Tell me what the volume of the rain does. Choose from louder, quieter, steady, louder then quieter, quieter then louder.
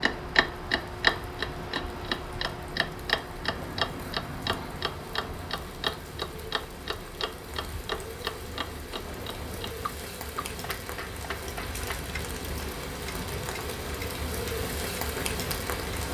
louder.